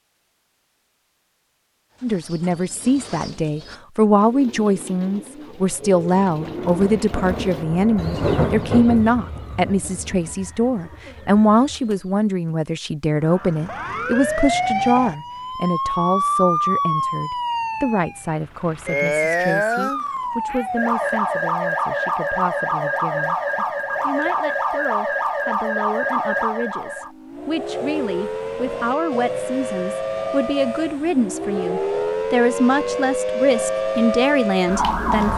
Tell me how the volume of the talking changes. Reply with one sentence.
The loudness of the talking goes down, then up.